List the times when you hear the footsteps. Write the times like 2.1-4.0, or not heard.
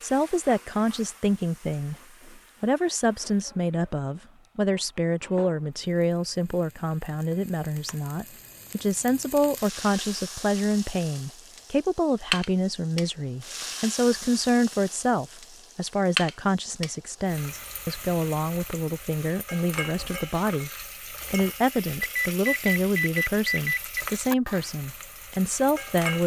not heard.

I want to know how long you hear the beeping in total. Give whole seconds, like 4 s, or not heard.
2 s.